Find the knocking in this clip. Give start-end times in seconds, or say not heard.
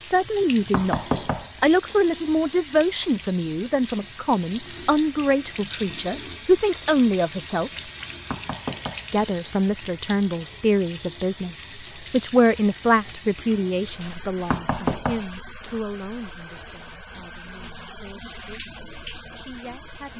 0.7-2.0, 8.3-9.6, 14.5-15.8.